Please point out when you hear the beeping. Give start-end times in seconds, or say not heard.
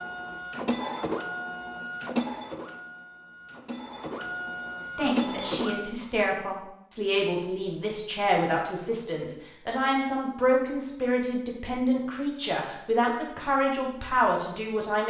not heard.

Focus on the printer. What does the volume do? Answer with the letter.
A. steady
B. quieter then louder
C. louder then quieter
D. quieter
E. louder
B.